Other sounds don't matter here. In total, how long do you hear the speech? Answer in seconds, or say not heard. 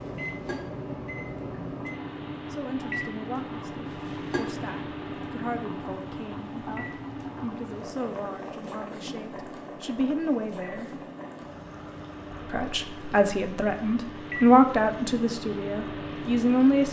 13 s.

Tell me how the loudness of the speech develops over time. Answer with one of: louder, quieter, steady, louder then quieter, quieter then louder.
louder.